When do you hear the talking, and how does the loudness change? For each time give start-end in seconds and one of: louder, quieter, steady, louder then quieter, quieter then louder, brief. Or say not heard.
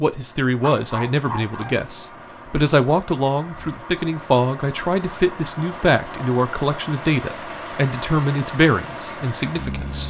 0.0-10.0 steady.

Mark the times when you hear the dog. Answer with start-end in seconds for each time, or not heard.
0.6-1.8.